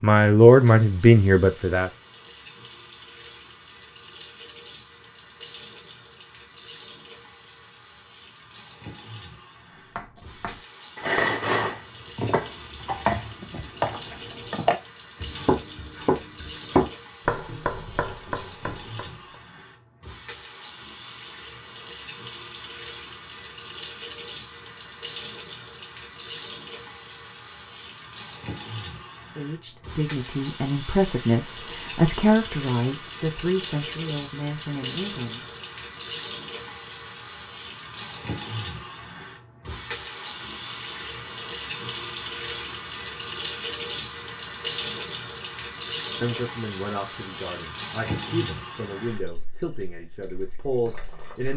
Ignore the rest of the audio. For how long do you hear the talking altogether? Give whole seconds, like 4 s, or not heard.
13 s.